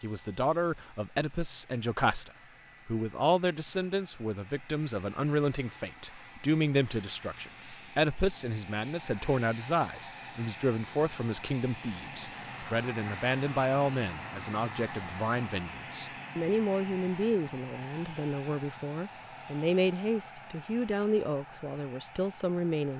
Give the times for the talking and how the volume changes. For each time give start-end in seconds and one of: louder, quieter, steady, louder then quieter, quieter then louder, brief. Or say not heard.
0.0-22.9 steady.